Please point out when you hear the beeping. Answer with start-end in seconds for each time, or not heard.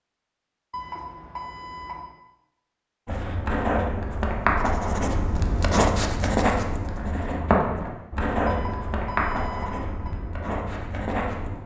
0.7-2.1, 8.4-10.2.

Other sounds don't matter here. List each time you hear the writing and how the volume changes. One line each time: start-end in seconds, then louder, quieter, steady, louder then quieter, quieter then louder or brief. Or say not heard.
3.0-11.6 quieter.